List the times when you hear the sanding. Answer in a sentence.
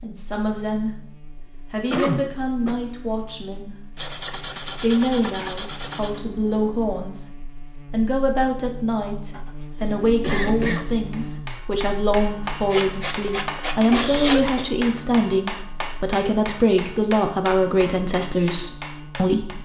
You can hear the sanding from 4.0 to 6.2 s and from 12.7 to 14.6 s.